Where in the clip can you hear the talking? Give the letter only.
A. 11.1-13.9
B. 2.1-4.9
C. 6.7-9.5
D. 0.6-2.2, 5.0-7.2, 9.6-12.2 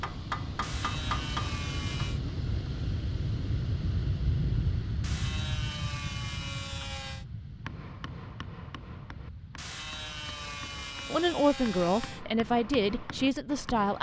A.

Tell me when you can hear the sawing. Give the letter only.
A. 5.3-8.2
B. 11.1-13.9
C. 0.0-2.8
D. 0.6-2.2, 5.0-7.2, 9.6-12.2
D.